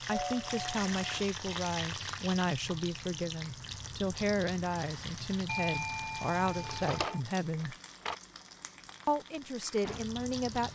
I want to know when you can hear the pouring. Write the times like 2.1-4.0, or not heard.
not heard.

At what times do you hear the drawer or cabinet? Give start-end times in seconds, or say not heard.
6.5-8.2.